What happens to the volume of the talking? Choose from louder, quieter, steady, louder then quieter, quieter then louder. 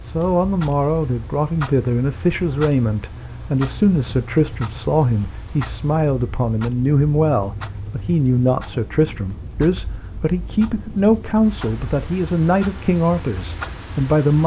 steady.